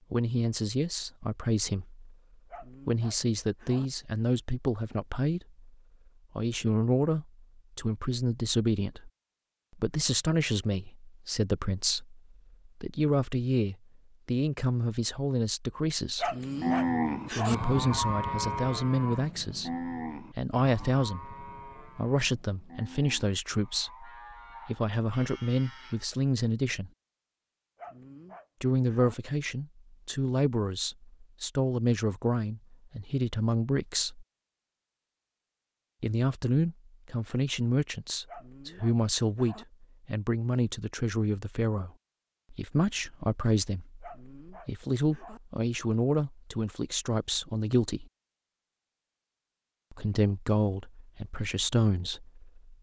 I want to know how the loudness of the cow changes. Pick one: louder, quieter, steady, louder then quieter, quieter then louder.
quieter.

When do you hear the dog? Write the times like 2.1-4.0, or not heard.
2.5-3.9, 16.1-17.6, 27.8-29.1, 38.2-39.6, 44.0-45.4.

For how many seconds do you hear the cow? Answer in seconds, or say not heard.
10 s.